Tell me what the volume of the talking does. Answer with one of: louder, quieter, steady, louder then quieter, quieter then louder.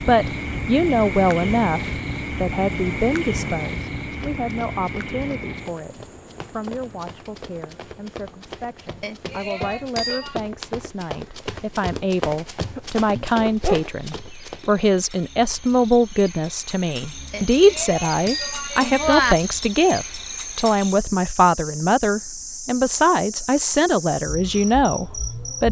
quieter then louder.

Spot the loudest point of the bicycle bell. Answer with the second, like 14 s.
19 s.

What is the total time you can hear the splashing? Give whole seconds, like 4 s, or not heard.
not heard.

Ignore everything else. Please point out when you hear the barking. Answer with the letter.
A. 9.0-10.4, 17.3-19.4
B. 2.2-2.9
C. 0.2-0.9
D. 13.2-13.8
D.